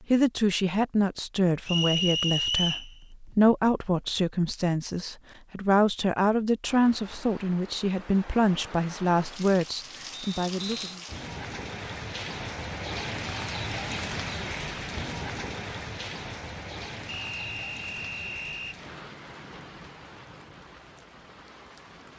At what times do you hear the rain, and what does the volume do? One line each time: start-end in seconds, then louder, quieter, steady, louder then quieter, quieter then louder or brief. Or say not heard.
6.7-22.1 louder then quieter.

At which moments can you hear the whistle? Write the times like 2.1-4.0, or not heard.
1.6-2.9, 10.1-11.0, 17.1-18.8.